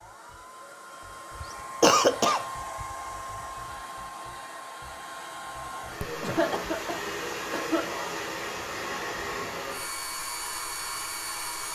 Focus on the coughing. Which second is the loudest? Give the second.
2 s.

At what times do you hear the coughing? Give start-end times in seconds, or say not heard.
1.4-2.9, 6.0-8.0.